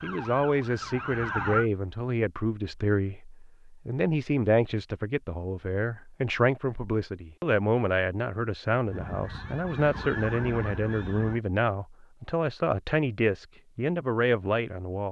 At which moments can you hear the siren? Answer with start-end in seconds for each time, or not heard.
0.0-1.6, 8.8-11.4.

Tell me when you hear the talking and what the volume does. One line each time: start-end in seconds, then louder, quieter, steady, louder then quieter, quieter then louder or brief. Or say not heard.
0.0-15.0 steady.